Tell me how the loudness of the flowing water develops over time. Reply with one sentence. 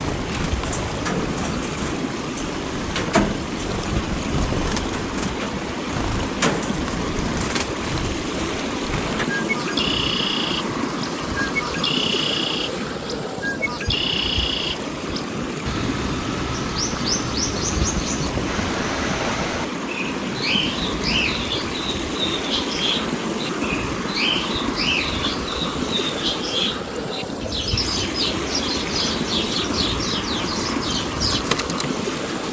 The volume of the flowing water stays about the same.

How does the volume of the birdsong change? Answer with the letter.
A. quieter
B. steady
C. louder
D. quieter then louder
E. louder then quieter
B.